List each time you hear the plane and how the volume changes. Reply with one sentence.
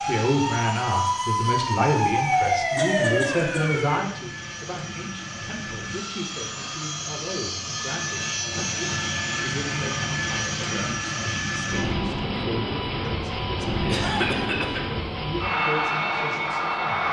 The plane can be heard from 0.0 to 17.0 s, getting louder.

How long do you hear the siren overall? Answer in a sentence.
You can hear the siren for 4 seconds altogether.